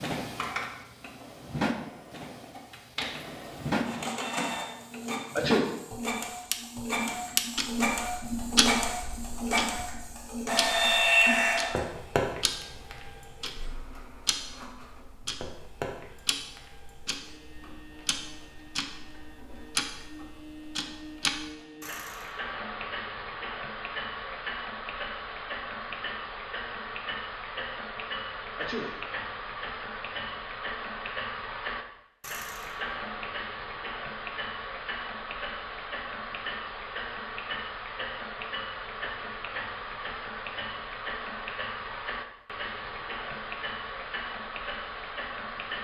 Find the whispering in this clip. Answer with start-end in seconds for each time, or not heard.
not heard.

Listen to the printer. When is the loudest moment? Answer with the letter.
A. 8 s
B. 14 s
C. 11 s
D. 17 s
C.